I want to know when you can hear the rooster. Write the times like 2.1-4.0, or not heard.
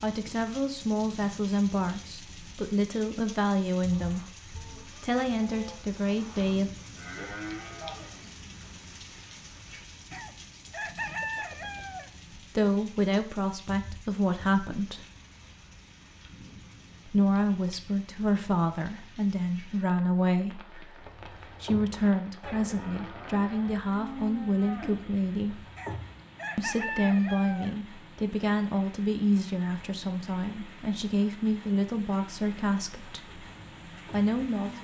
10.1-12.1, 25.8-27.8.